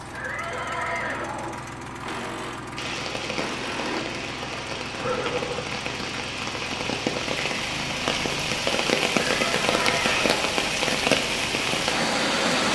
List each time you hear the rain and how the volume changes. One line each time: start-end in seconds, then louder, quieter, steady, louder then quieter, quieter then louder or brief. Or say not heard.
2.8-12.7 louder.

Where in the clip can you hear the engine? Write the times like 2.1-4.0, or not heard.
0.0-12.6.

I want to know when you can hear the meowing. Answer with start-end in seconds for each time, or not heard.
not heard.